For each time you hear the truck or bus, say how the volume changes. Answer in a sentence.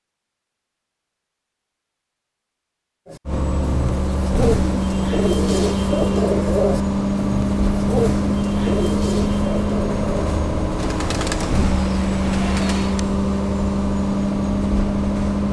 You can hear the truck or bus from 3.2 to 15.4 s, at a steady volume.